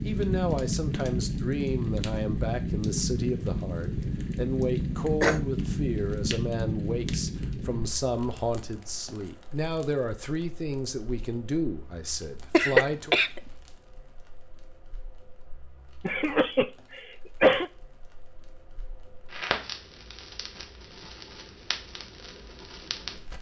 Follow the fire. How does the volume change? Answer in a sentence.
The loudness of the fire goes down, then up.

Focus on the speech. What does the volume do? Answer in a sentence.
The volume of the speech stays about the same.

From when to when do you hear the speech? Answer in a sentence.
The speech can be heard from 0.0 to 13.2 s.